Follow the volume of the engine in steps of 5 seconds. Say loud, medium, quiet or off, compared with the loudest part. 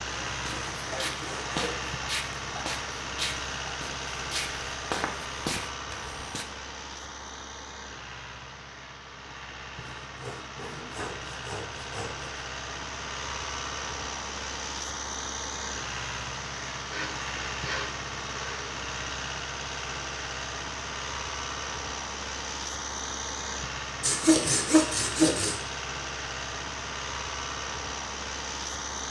loud, medium, loud, loud, loud, loud.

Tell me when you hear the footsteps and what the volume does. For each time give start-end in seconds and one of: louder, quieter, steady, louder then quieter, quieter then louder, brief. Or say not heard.
0.2-6.5 steady.